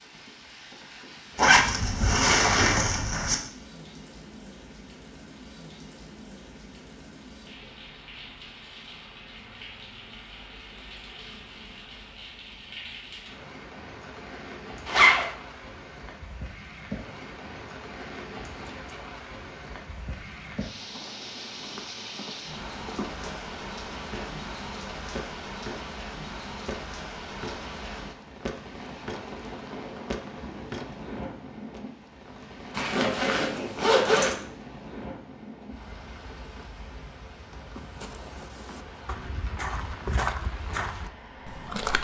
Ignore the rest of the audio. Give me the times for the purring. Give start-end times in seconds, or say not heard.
not heard.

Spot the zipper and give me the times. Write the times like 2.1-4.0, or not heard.
1.4-3.4, 14.8-15.2, 32.8-34.4.